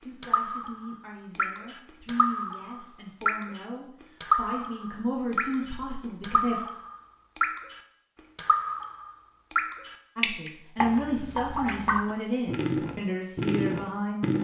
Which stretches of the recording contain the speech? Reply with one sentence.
The speech can be heard from 0.0 to 6.7 s and from 10.2 to 14.3 s.